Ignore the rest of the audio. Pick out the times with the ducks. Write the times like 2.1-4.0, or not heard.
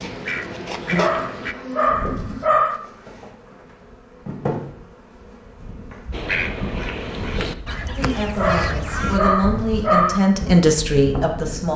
0.0-1.6, 6.1-9.2.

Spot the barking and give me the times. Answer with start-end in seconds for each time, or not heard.
0.9-2.8, 8.3-10.2.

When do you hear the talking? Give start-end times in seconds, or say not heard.
7.8-11.7.